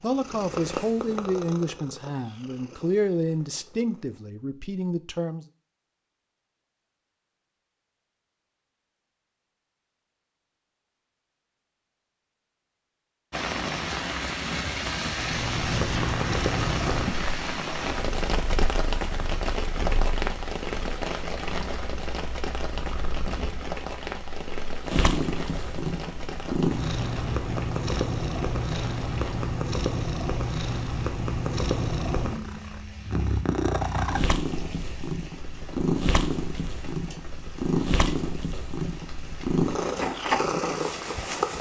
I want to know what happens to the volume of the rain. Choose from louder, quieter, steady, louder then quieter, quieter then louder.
quieter.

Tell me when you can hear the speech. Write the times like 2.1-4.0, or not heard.
0.0-5.5.